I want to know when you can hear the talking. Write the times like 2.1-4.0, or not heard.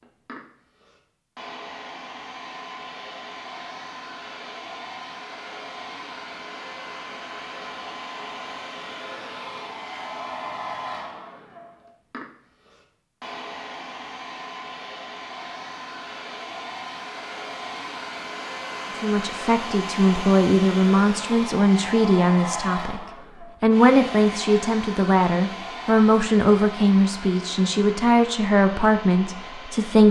19.0-23.0, 23.6-30.0.